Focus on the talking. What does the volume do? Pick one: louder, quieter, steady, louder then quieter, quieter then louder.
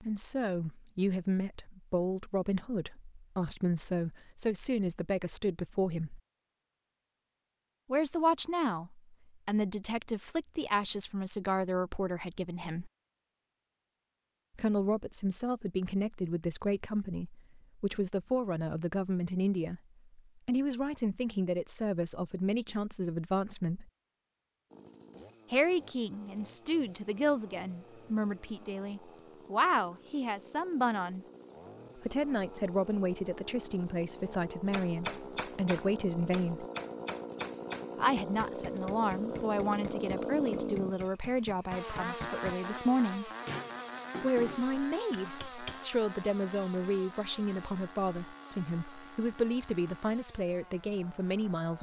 steady.